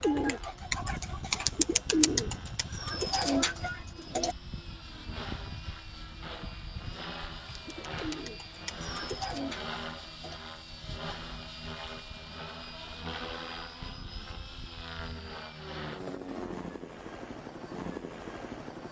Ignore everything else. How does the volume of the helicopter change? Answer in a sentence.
The loudness of the helicopter stays about the same.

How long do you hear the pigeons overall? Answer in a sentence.
You can hear the pigeons for 7 seconds altogether.